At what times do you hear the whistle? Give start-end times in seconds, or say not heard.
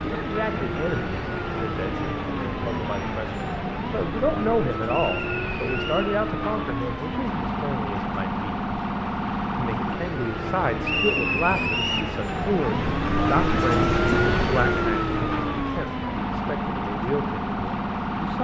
4.8-6.2, 10.8-12.1.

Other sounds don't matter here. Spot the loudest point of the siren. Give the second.
14 s.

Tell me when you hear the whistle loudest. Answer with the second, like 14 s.
11 s.